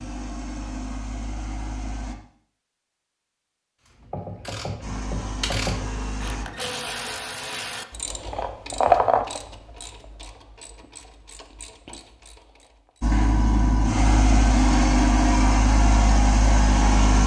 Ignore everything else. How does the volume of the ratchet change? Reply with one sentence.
The loudness of the ratchet goes up, then down.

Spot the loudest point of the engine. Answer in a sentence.
The loudest moment of the engine is at 15 seconds.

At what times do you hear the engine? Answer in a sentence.
You can hear the engine from 0.0 to 2.1 s, from 4.8 to 6.5 s and from 13.0 to 17.2 s.